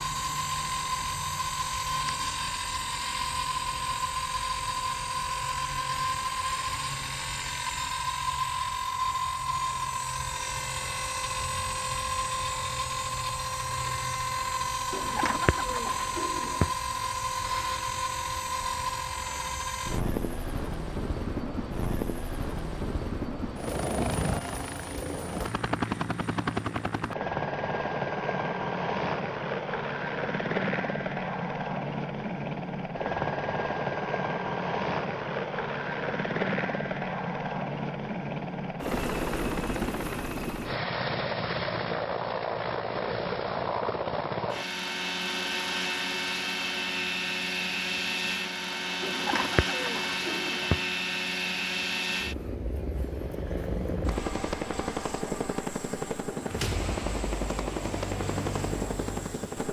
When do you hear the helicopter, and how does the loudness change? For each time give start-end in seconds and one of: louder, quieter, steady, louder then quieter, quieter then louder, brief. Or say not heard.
0.0-59.6 steady.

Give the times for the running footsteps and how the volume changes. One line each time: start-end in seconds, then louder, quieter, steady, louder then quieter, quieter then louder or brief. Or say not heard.
not heard.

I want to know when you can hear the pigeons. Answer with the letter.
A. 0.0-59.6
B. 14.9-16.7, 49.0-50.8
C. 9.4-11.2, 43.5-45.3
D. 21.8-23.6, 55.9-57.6
B.